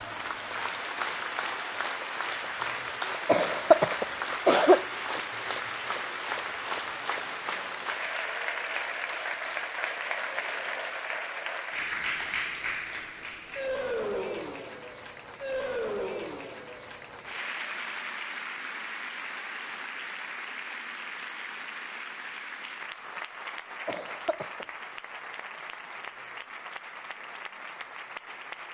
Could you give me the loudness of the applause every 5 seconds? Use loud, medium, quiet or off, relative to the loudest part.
loud, loud, loud, loud, medium, medium.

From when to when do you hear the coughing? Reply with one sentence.
The coughing can be heard from 3.2 to 4.8 s and from 23.9 to 24.6 s.